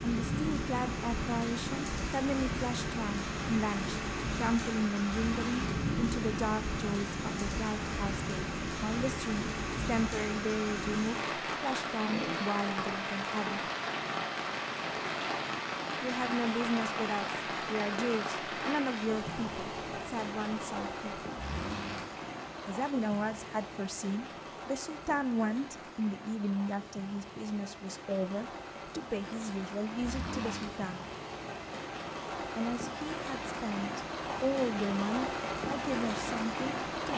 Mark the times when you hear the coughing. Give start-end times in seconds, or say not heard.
not heard.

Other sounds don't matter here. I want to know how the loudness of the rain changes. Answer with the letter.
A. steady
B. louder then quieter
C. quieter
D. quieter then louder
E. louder
D.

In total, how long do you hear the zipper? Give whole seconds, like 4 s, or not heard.
2 s.